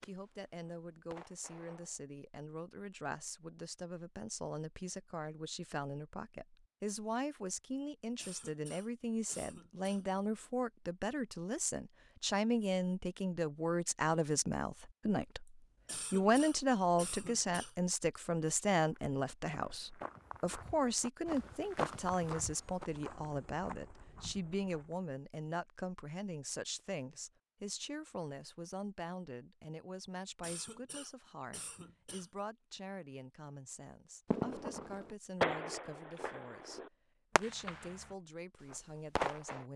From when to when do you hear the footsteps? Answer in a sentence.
The footsteps can be heard from 18.9 to 25.1 s.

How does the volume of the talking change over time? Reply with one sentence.
The volume of the talking goes up, then down.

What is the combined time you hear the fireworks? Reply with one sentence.
You can hear the fireworks for 7 seconds altogether.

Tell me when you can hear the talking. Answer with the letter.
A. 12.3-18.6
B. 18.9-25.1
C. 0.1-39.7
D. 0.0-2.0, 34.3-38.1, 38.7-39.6
C.